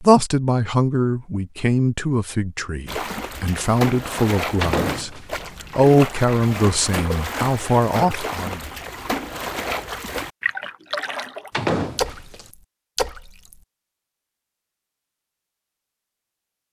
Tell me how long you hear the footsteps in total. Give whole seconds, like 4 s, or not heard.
not heard.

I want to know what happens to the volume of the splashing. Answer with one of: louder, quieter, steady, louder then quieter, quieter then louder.
steady.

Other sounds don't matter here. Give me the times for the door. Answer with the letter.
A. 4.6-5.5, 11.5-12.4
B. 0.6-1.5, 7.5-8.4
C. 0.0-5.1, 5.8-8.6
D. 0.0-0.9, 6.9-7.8
A.